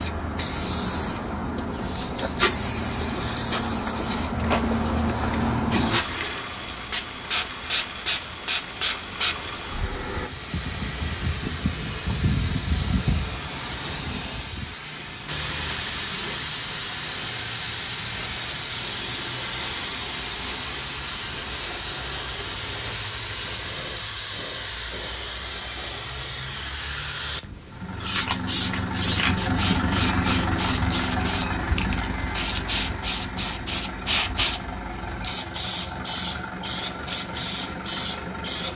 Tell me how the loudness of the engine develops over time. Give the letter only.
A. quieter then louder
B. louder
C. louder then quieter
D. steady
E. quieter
E.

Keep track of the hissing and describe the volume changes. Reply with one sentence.
The loudness of the hissing stays about the same.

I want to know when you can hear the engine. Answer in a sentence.
The engine can be heard from 27.6 to 38.7 s.